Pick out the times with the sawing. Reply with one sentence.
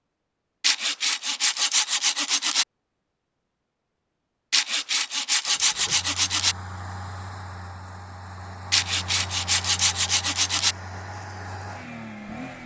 The sawing can be heard from 0.6 to 2.6 s, from 4.5 to 6.5 s and from 8.7 to 10.8 s.